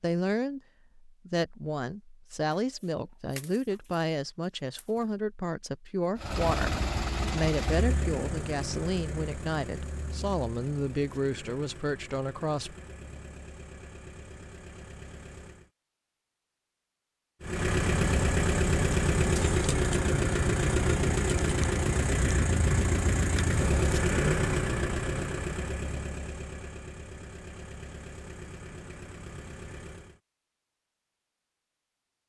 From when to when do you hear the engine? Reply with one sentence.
You can hear the engine from 6.2 to 15.7 s and from 17.4 to 30.2 s.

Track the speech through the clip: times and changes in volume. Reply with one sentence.
The speech can be heard from 0.0 to 12.8 s, at a steady volume.